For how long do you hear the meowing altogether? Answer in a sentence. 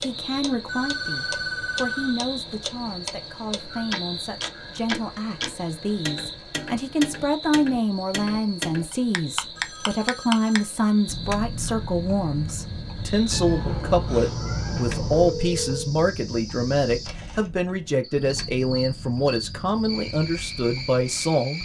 You can hear the meowing for 2 seconds altogether.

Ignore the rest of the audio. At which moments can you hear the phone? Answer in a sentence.
The phone can be heard from 0.7 to 2.2 s, from 9.6 to 10.8 s and from 15.1 to 15.9 s.